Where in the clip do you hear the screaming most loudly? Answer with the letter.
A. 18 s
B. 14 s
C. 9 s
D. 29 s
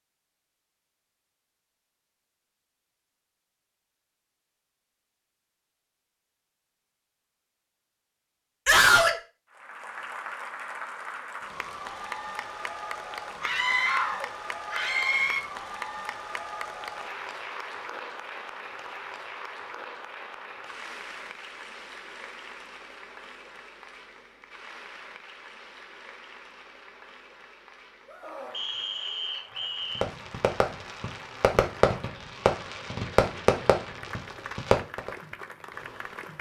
C.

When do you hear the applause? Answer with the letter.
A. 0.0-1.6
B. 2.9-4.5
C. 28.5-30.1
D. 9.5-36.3
D.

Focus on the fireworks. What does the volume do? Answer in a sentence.
The volume of the fireworks goes up, then down.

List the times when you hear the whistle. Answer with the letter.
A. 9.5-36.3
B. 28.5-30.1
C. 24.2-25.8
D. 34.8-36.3
B.